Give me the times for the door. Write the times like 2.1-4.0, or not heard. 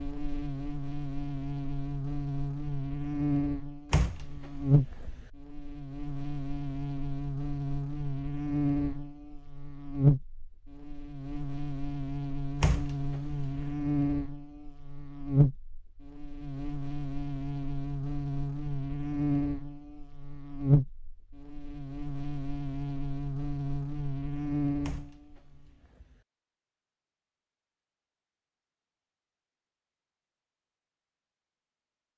3.9-5.3, 12.6-13.7, 24.8-26.2.